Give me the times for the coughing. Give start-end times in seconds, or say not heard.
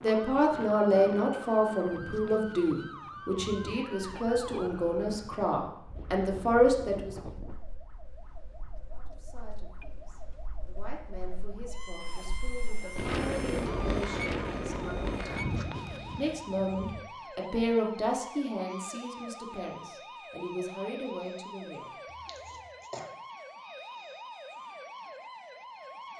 22.1-23.1.